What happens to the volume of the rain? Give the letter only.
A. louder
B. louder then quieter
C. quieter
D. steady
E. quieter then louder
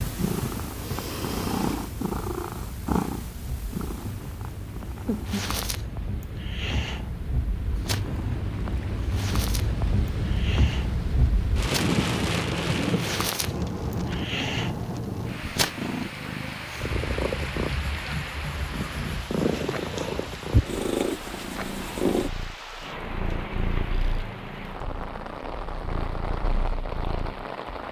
B.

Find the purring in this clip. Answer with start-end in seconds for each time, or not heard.
0.0-27.4.